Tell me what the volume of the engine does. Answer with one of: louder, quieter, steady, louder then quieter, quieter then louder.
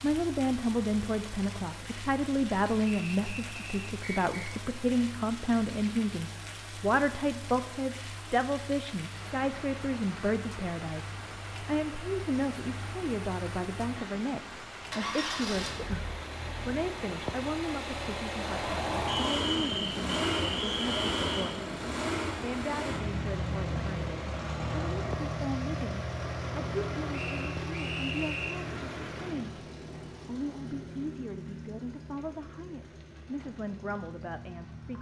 louder then quieter.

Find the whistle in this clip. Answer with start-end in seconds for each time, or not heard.
2.9-4.5, 19.1-21.6, 27.1-28.6.